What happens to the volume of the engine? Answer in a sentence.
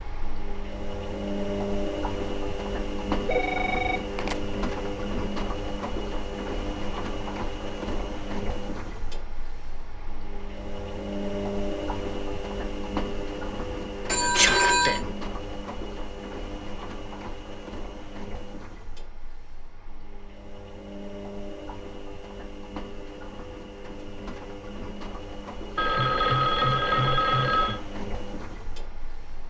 The loudness of the engine goes down.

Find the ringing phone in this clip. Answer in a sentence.
The ringing phone can be heard from 3.2 to 4.3 s, from 14.1 to 15.0 s and from 25.8 to 27.8 s.